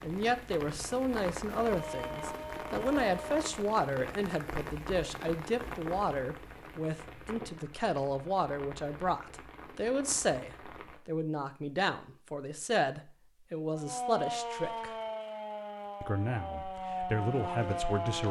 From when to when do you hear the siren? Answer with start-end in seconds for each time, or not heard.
1.6-3.4, 13.7-18.2.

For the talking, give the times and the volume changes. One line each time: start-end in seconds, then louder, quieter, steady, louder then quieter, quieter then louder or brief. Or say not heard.
0.0-14.9 steady
16.0-18.2 brief.